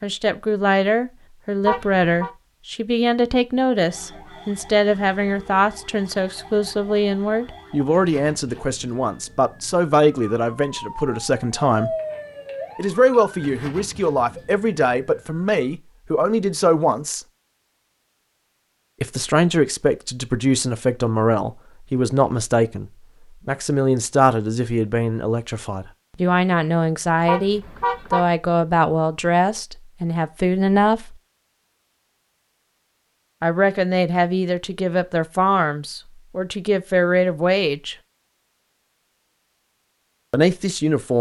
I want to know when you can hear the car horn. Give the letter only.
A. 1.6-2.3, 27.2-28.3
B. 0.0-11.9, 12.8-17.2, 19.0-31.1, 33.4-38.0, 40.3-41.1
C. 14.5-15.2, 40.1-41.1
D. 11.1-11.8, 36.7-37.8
A.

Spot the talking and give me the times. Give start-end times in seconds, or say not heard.
0.0-11.9, 12.8-17.2, 19.0-31.1, 33.4-38.0, 40.3-41.1.